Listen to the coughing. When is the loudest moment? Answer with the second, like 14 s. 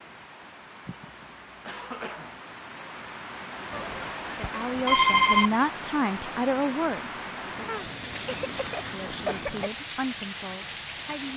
9 s.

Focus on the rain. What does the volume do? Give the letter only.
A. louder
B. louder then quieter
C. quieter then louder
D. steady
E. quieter
A.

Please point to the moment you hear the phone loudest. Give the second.
5 s.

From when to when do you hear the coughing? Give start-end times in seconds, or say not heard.
0.8-2.4, 7.7-9.7.